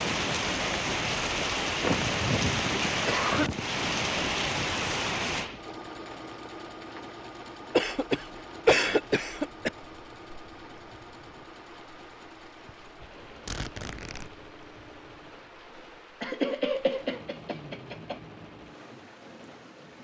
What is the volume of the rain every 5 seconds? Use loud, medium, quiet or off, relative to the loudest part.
loud, medium, quiet, quiet.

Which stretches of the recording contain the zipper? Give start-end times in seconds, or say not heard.
12.7-14.3.